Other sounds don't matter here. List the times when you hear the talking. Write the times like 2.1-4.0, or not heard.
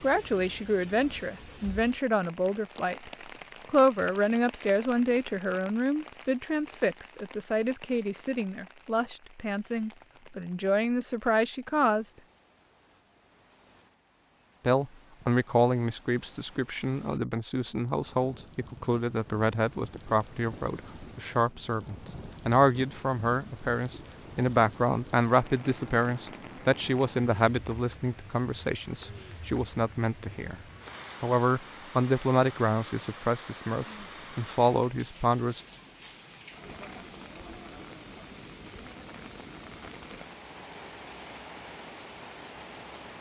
0.0-12.1, 14.7-30.6, 31.2-35.6.